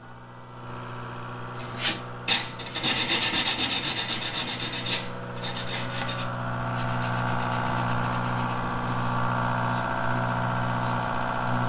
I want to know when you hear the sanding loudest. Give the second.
3 s.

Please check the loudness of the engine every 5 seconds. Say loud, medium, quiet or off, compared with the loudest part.
quiet, loud, loud.